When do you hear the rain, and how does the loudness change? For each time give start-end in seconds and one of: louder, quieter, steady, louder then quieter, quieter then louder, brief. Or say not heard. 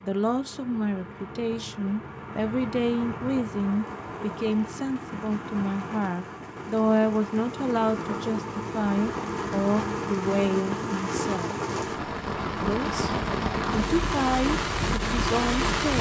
0.0-15.9 louder.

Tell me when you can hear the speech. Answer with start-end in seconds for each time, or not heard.
0.0-11.6, 12.6-15.9.